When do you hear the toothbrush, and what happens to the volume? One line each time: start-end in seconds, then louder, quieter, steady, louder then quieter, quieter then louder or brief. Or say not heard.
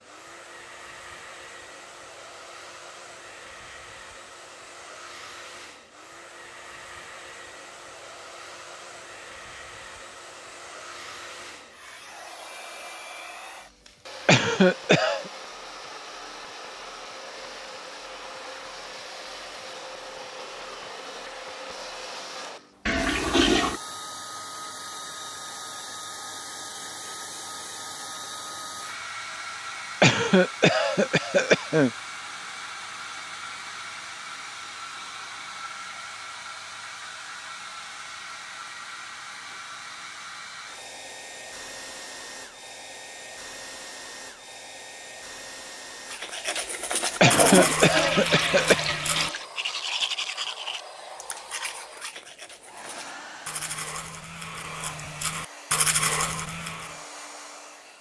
46.1-57.0 quieter then louder.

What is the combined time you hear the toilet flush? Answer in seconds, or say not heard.
3 s.